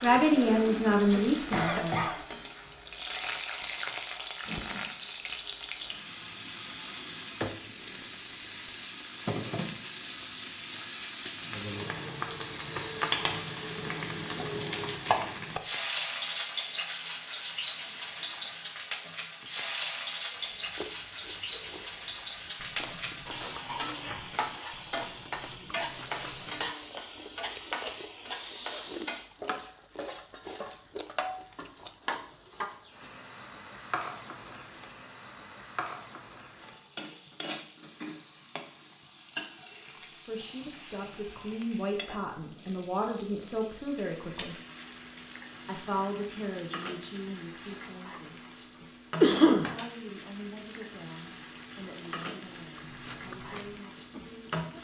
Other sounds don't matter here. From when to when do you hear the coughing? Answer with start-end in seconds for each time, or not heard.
0.0-2.2, 49.2-49.7.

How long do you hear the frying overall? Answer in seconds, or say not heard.
55 s.